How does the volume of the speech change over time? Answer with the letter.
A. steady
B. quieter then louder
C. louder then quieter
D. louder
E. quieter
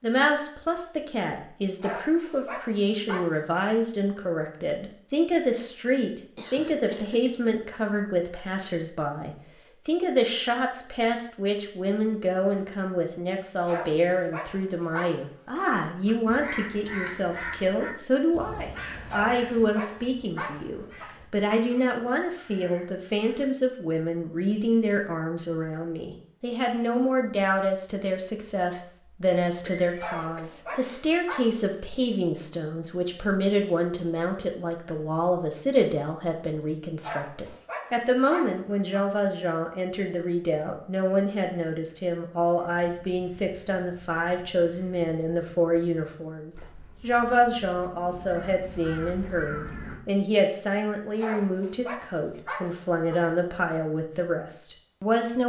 A.